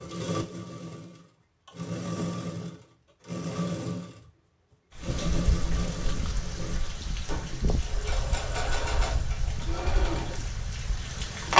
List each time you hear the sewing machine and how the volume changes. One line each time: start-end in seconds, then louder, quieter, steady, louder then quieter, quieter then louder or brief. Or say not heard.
0.0-11.5 steady.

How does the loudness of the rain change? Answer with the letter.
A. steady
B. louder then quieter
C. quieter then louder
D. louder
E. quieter
A.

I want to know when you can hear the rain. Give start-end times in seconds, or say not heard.
5.0-11.5.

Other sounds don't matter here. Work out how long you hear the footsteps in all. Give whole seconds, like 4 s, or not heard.
not heard.